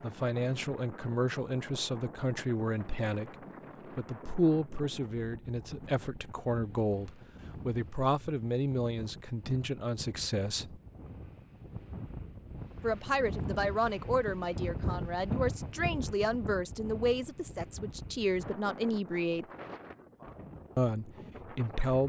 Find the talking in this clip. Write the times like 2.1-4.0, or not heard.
0.0-3.4, 4.0-10.8, 12.8-19.4, 20.8-22.0.